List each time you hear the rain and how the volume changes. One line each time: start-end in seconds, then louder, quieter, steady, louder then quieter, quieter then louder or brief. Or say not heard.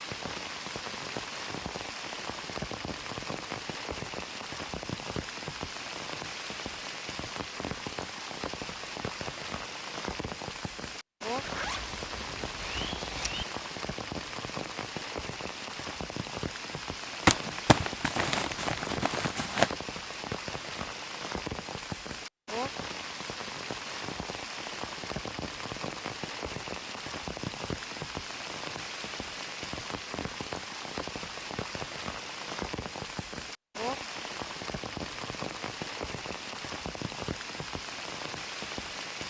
0.0-39.2 steady.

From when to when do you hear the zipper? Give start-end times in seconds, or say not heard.
11.4-13.4.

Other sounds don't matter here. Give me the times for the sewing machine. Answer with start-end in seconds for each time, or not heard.
not heard.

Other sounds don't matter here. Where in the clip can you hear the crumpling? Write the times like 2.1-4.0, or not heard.
17.2-19.7.